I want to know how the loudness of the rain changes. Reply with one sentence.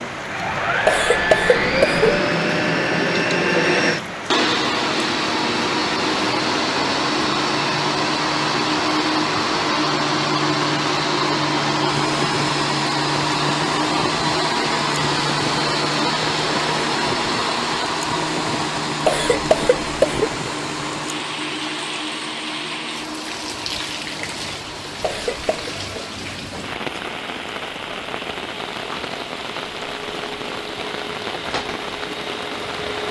The loudness of the rain stays about the same.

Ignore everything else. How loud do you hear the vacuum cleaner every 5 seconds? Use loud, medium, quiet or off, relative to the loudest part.
loud, loud, loud, loud, medium, quiet, quiet.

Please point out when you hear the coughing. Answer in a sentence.
You can hear the coughing from 0.8 to 2.0 s, from 19.1 to 20.3 s and from 25.0 to 25.7 s.